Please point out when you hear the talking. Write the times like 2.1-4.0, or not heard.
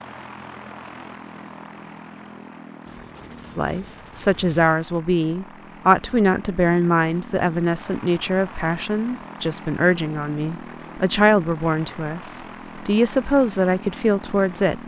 3.5-14.8.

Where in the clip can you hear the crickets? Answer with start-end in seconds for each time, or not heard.
not heard.